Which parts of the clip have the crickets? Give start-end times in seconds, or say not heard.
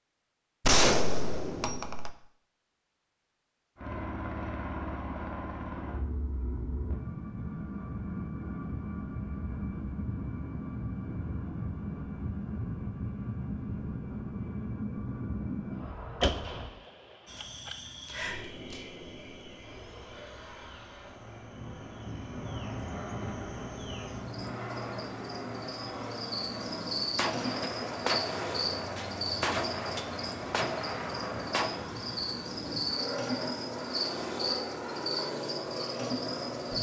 17.2-36.7.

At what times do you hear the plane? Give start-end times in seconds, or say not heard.
3.8-16.7, 19.6-36.7.